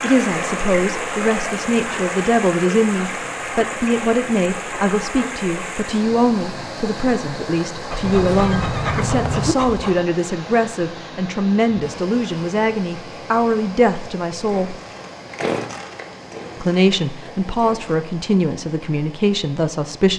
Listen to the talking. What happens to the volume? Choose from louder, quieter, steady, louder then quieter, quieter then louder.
steady.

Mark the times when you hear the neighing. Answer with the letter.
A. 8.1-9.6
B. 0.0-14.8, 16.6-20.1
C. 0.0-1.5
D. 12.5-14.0
A.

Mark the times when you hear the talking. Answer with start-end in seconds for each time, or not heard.
0.0-14.8, 16.6-20.1.